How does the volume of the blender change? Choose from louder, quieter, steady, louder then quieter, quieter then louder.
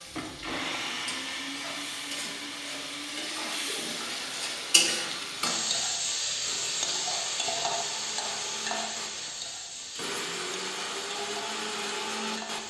quieter then louder.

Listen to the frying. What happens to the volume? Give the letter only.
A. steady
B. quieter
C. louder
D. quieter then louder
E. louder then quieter
E.